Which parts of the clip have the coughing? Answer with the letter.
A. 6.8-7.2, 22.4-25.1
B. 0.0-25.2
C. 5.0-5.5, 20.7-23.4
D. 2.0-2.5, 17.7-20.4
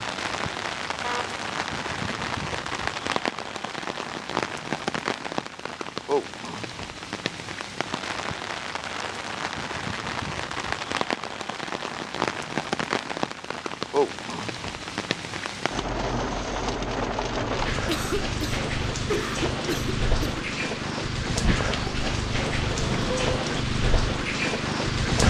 D.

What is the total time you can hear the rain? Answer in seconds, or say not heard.
25 s.